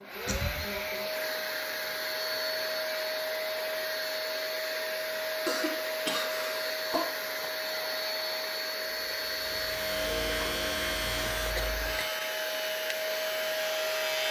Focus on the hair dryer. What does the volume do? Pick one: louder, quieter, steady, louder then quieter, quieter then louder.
steady.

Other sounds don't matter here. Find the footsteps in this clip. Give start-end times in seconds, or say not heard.
not heard.